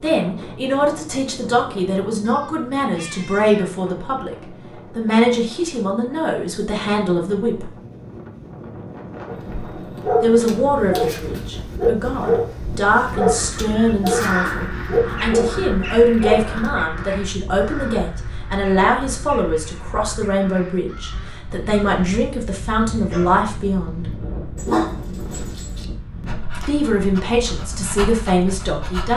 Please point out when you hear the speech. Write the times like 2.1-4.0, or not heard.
0.0-7.7, 10.2-24.1, 26.6-29.1.